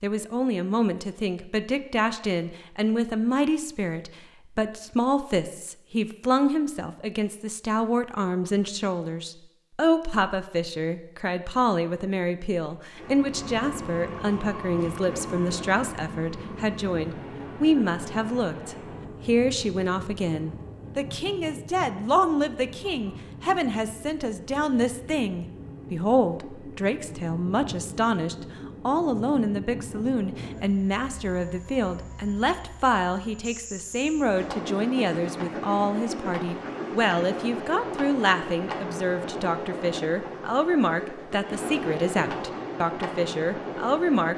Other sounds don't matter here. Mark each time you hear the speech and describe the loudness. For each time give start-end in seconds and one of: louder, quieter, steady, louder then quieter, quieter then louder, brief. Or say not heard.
0.0-44.3 steady.